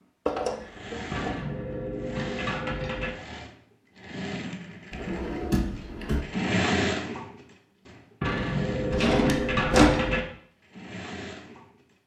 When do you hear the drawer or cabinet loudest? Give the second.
10 s.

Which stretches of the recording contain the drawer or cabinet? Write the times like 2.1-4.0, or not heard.
0.2-1.4, 4.9-6.2, 8.9-10.1.